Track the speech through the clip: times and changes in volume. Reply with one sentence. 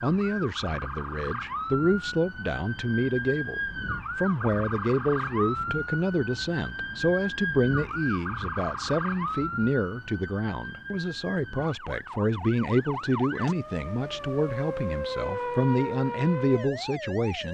You can hear the speech from 0.0 to 17.4 s, at a steady volume.